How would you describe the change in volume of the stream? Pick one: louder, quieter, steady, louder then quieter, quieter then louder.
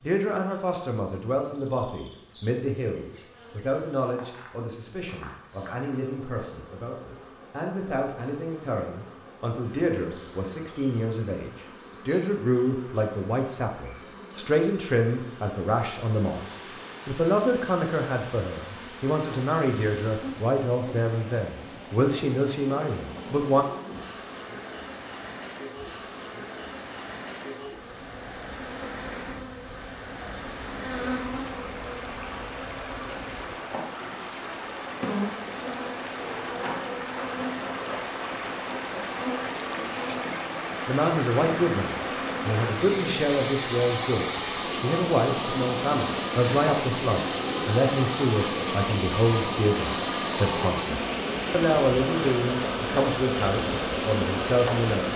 louder.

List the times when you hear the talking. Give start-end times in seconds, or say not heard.
0.0-23.6, 40.9-55.1.